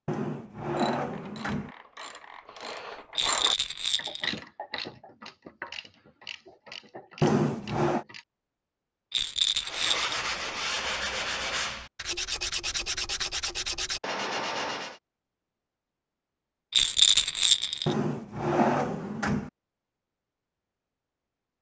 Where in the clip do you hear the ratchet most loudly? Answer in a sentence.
The loudest moment of the ratchet is at 3 seconds.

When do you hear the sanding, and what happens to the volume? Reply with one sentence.
The sanding can be heard from 9.6 to 15.0 s, at a steady volume.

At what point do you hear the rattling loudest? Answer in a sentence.
The loudest moment of the rattling is at 17 seconds.